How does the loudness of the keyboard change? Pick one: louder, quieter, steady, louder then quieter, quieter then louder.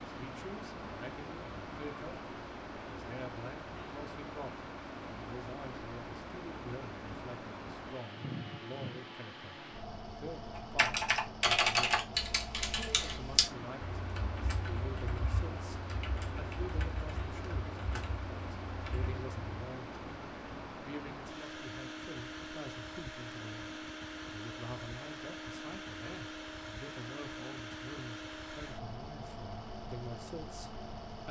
quieter.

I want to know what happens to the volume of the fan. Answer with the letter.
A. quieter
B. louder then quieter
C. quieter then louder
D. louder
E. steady
E.